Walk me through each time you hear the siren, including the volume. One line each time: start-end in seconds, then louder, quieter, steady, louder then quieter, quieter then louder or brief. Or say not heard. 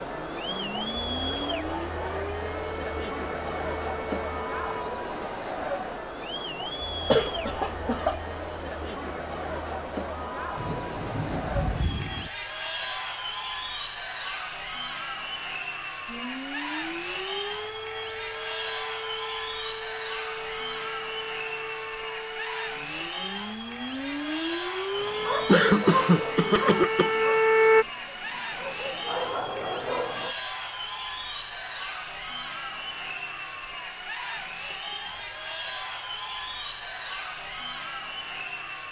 0.0-4.8 steady
16.1-27.9 louder.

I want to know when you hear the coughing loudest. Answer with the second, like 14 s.
26 s.